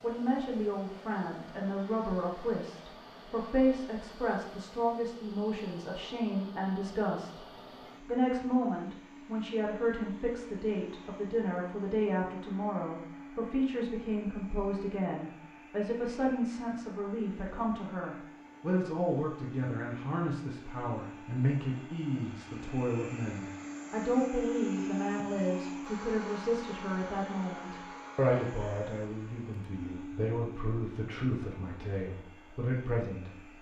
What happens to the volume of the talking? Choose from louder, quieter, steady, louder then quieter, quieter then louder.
steady.